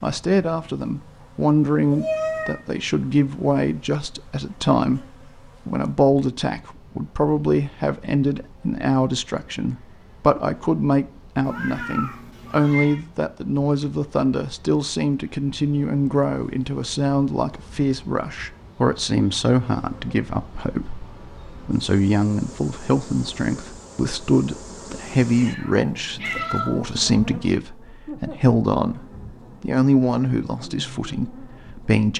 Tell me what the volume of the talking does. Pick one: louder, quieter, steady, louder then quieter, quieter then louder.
steady.